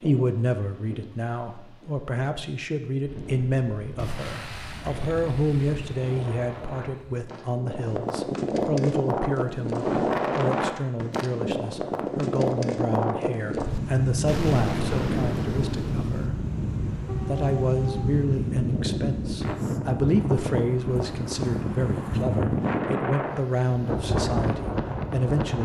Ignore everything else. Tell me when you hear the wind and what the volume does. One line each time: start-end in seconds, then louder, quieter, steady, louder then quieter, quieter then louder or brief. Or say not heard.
0.0-25.5 louder.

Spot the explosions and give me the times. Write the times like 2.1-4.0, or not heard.
4.0-7.2, 14.2-16.3.